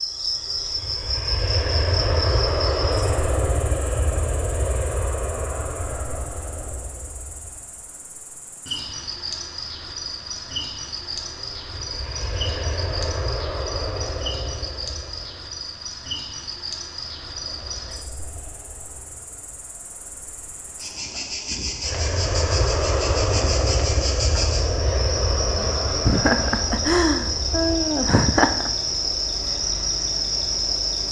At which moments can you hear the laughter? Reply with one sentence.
You can hear the laughter from 26.1 to 28.7 s.